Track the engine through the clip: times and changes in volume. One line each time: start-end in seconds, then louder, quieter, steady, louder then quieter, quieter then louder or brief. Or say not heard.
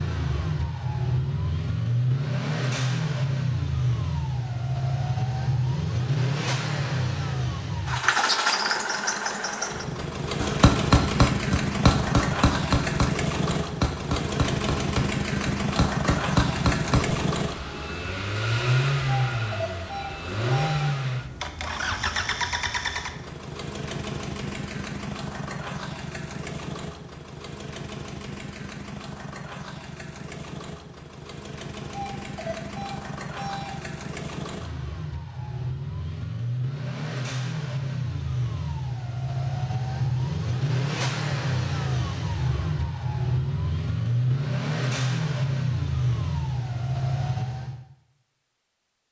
0.0-47.9 quieter then louder.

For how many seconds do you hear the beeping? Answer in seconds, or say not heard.
4 s.